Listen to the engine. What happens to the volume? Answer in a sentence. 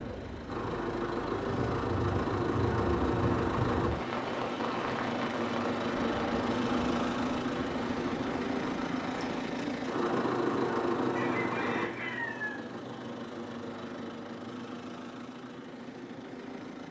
The volume of the engine goes down.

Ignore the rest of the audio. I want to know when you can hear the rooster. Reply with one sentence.
The rooster can be heard from 11.2 to 12.7 s.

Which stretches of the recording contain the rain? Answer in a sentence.
The rain can be heard from 0.0 to 9.4 s.